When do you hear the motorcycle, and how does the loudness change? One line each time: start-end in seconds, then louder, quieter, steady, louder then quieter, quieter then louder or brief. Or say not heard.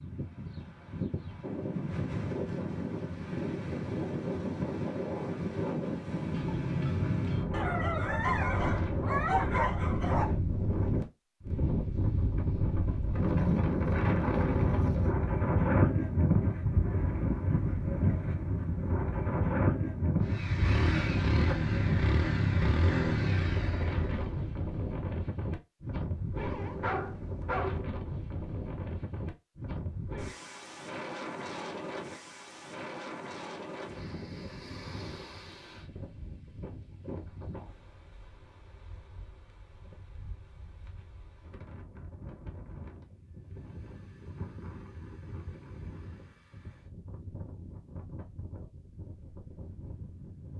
20.2-24.6 quieter.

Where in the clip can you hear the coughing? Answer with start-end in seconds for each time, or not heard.
not heard.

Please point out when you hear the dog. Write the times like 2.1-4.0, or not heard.
7.5-10.3, 26.4-27.8.